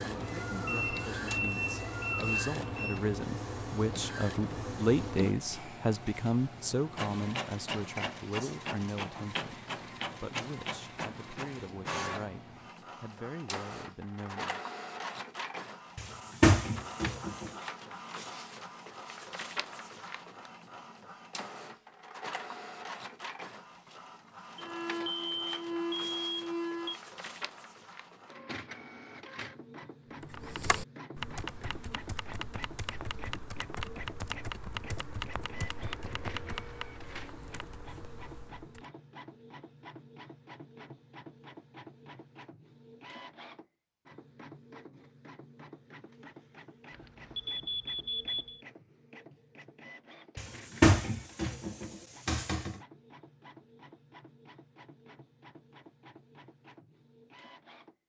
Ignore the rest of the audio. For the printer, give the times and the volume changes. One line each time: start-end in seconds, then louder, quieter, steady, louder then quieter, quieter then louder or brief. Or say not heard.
0.0-58.0 quieter.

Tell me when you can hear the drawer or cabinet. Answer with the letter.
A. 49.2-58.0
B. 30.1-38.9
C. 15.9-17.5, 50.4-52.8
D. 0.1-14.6
C.